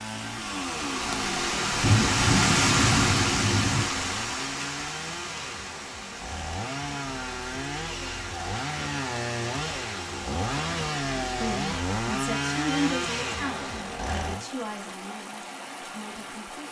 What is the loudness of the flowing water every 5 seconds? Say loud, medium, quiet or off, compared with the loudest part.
loud, quiet, quiet, quiet.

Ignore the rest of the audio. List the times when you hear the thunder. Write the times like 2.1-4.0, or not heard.
1.8-3.9.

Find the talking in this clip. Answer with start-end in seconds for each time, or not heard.
11.2-16.6.